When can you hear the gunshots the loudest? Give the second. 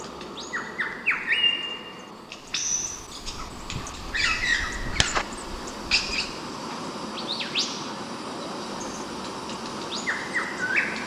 5 s.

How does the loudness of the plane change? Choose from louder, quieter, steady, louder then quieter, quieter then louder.
louder.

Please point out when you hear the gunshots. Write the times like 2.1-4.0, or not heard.
3.2-5.2.